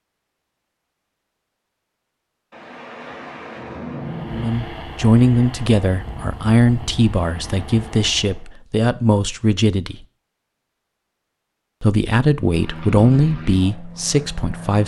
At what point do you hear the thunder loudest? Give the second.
4 s.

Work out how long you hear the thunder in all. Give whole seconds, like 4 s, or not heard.
2 s.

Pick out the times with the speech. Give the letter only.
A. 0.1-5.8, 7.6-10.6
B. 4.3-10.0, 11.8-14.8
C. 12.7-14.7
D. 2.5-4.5
B.